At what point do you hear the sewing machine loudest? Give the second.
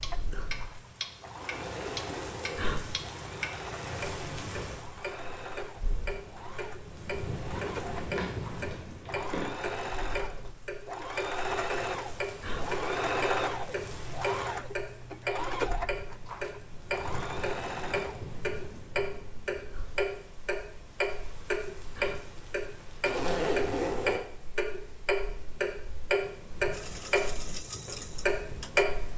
13 s.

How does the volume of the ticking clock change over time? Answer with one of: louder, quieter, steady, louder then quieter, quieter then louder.
louder.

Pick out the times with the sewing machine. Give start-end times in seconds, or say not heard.
0.0-18.2, 26.7-29.1.